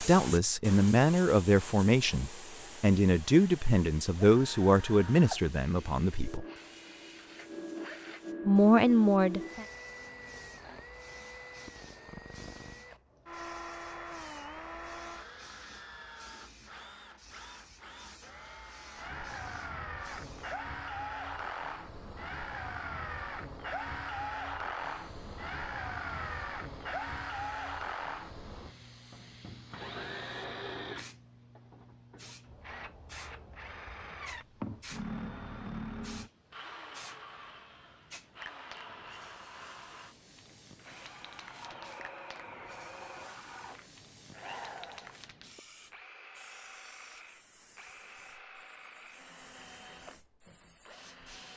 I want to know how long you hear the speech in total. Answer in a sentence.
You can hear the speech for 8 seconds altogether.